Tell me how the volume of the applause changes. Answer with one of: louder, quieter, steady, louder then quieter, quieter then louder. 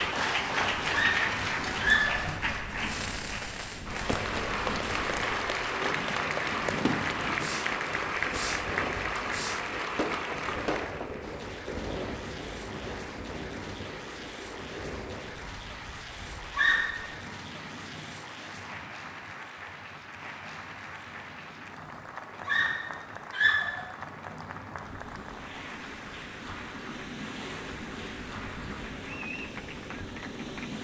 quieter.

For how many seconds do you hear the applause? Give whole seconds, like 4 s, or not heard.
31 s.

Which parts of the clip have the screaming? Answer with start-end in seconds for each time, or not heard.
0.9-2.3, 16.4-17.1, 22.4-23.9.